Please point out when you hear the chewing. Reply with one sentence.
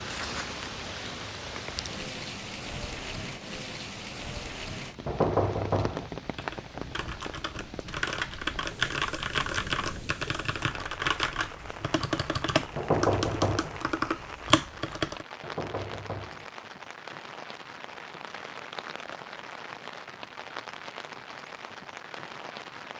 You can't hear the chewing here.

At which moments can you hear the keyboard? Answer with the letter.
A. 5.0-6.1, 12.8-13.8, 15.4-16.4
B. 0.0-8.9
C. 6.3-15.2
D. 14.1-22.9
C.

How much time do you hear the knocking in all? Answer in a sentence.
You can hear the knocking for 3 seconds altogether.